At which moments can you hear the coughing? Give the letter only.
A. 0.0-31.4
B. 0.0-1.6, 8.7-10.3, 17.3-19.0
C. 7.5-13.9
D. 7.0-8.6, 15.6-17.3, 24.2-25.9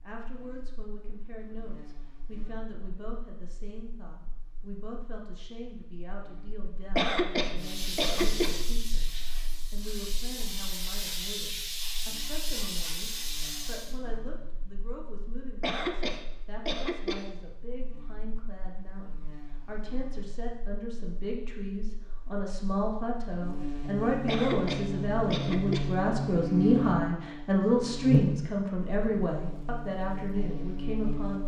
D.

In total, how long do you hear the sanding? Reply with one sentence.
The sanding can't be heard in this clip.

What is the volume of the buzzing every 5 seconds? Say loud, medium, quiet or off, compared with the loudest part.
quiet, quiet, quiet, quiet, medium, loud, medium.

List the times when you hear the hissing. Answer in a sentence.
The hissing can be heard from 7.5 to 13.9 s.